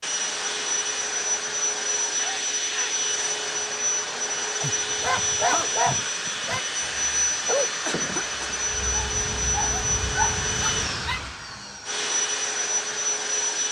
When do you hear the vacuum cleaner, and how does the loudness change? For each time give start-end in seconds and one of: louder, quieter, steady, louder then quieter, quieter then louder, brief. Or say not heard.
0.0-13.6 steady.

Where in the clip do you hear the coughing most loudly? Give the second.
8 s.